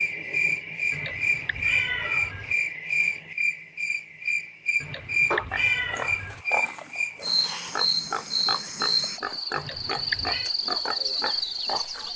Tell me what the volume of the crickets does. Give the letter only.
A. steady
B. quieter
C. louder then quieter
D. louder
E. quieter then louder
A.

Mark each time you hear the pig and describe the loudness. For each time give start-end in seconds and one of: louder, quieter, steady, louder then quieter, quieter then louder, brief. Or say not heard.
5.5-12.1 steady.